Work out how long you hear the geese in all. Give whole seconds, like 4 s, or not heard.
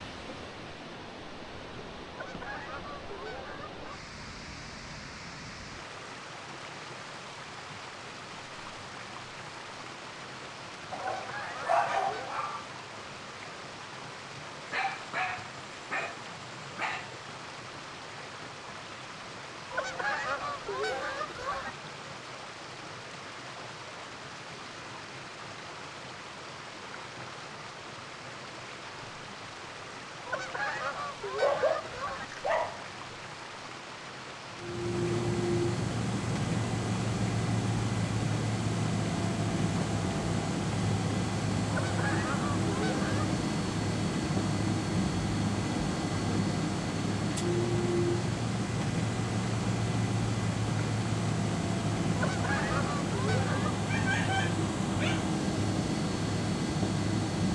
10 s.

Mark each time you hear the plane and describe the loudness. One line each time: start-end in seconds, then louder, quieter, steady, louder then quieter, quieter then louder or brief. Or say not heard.
34.5-57.5 steady.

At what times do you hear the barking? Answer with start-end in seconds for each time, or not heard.
10.9-12.7, 14.7-17.1, 31.4-33.2, 53.8-55.3.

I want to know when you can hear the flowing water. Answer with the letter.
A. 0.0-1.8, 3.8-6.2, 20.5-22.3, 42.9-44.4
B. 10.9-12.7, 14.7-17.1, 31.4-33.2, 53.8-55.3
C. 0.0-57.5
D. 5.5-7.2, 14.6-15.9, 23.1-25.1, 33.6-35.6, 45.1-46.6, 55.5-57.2
C.